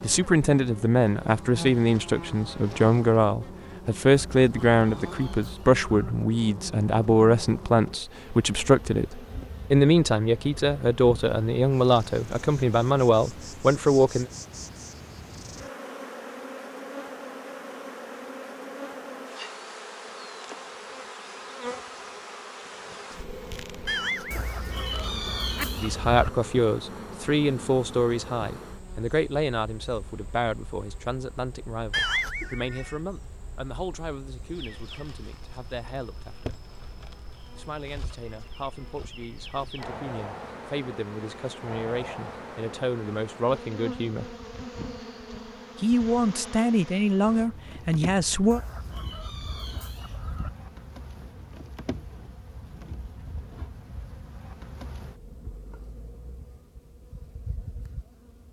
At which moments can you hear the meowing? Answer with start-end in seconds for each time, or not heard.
23.9-25.6, 31.9-33.0.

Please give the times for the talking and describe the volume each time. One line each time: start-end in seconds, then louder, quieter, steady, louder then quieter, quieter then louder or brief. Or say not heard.
0.0-14.3 steady
25.8-36.5 quieter
37.5-44.3 louder
45.8-48.6 brief.